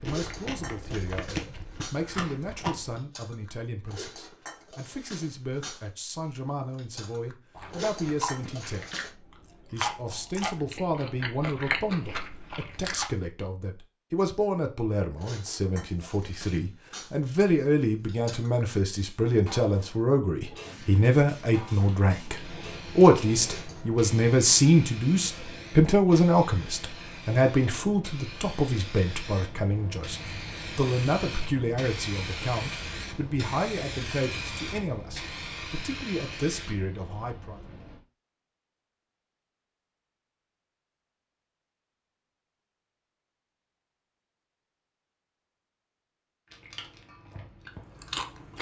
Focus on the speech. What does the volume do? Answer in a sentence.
The volume of the speech goes up, then down.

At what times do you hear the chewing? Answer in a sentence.
You can hear the chewing from 0.0 to 3.0 s, from 7.5 to 13.1 s and from 46.5 to 48.5 s.